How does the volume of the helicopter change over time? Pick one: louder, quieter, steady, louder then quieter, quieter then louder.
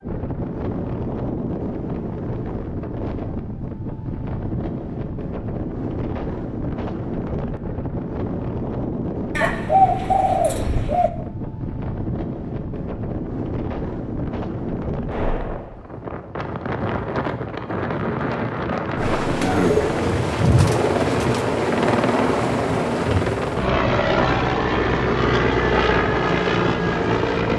steady.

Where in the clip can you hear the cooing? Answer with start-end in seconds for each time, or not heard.
9.3-11.1, 19.4-21.5.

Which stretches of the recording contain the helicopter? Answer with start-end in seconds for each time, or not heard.
18.9-27.5.